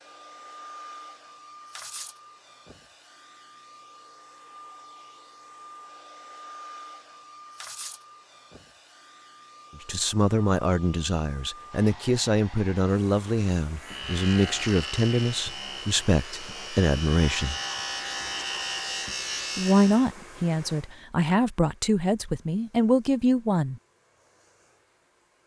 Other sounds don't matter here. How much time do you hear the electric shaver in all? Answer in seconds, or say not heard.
6 s.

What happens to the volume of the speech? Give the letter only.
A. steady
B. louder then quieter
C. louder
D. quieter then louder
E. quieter
A.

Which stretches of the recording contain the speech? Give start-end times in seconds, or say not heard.
9.8-17.6, 19.6-23.8.